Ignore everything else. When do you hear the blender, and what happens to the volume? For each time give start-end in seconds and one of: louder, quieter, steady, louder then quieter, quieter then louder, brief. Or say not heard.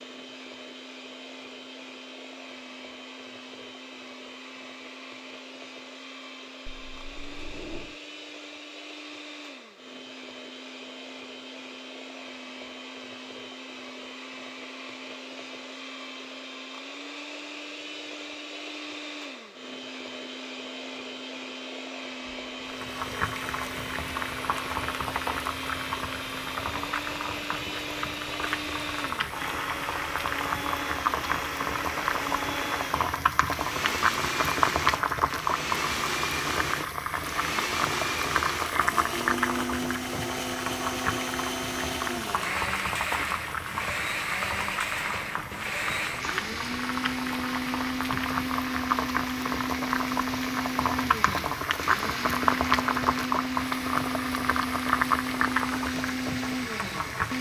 0.0-57.3 louder.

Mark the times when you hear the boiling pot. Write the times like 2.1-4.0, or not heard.
22.7-57.3.